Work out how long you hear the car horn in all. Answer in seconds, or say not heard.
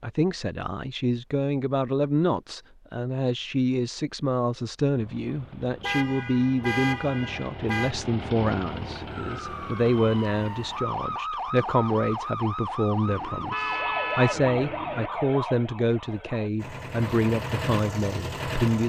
4 s.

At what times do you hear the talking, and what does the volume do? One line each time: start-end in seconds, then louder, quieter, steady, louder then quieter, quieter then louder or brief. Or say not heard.
0.0-18.8 steady.